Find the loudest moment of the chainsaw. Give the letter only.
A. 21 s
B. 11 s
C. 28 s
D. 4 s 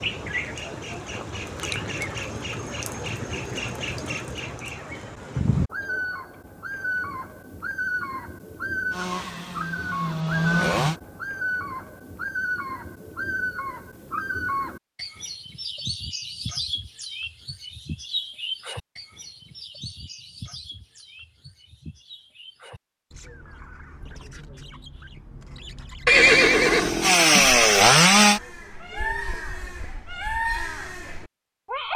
C.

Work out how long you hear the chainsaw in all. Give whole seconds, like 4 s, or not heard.
4 s.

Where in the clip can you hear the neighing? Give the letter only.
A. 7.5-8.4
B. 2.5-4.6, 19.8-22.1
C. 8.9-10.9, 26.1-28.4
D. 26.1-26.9
D.